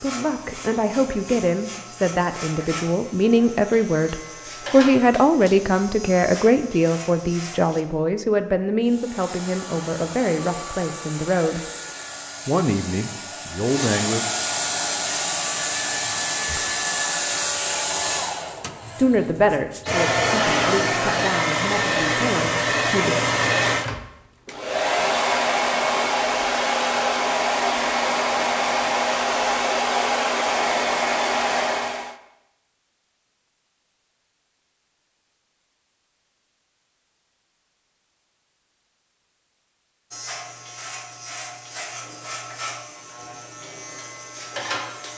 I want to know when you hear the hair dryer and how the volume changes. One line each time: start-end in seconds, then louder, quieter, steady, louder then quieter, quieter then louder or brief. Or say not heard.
8.8-32.1 louder.